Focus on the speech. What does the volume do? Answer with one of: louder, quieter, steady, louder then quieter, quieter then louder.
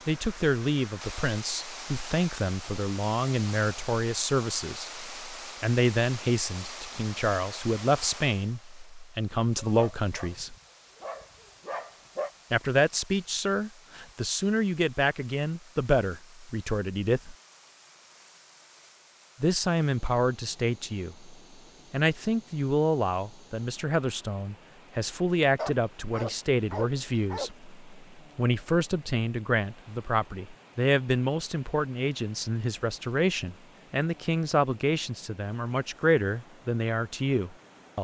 steady.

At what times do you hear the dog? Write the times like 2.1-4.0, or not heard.
9.7-12.3, 25.6-27.5.